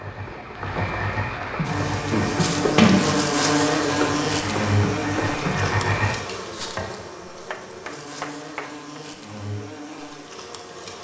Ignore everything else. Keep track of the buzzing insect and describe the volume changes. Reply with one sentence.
The loudness of the buzzing insect goes down.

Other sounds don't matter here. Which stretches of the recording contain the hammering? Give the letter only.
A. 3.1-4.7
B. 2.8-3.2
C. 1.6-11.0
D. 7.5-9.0
D.